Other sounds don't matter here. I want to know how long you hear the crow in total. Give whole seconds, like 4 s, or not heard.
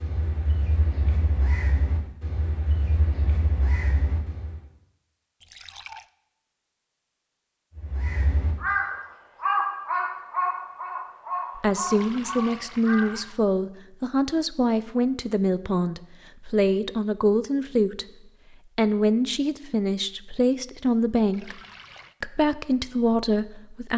10 s.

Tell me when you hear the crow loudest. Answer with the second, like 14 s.
10 s.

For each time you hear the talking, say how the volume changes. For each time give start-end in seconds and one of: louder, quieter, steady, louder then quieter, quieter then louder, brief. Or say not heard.
11.6-18.1 steady
18.8-21.6 brief
22.2-23.9 brief.